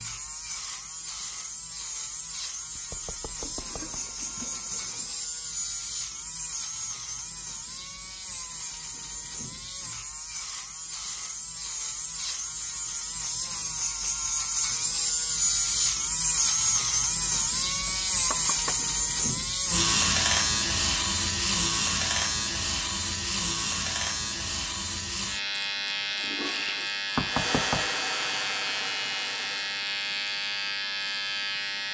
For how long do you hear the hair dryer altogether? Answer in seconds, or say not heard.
3 s.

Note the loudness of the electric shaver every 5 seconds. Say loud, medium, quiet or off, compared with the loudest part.
medium, medium, medium, loud, loud, medium, medium.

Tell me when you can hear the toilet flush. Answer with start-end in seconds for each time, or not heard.
3.4-5.2, 26.1-26.9.